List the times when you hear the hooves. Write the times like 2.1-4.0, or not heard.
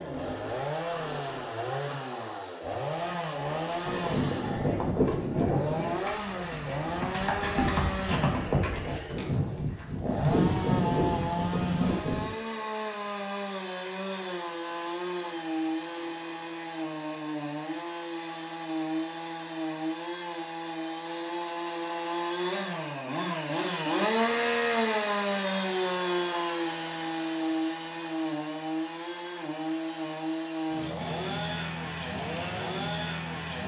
3.9-12.3.